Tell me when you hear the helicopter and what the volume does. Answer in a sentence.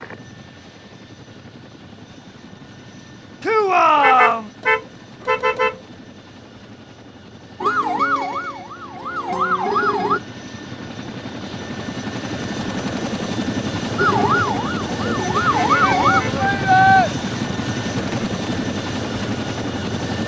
You can hear the helicopter from 0.0 to 20.2 s, getting louder.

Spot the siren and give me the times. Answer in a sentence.
The siren can be heard from 7.6 to 10.2 s and from 13.9 to 16.2 s.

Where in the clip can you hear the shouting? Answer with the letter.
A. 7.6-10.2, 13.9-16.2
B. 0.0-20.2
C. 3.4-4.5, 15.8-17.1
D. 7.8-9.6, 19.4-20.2
C.